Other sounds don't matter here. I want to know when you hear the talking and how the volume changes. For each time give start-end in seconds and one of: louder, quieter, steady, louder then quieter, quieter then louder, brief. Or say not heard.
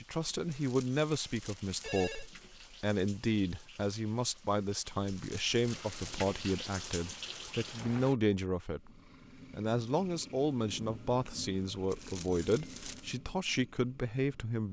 0.0-14.6 steady.